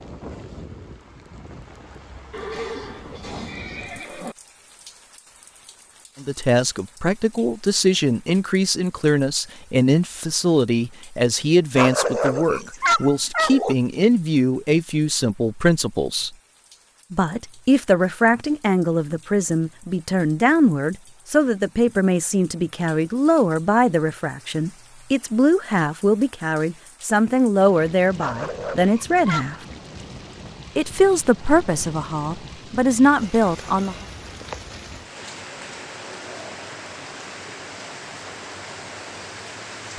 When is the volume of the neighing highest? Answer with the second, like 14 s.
3 s.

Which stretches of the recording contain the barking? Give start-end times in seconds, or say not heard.
11.8-13.8, 28.1-29.6.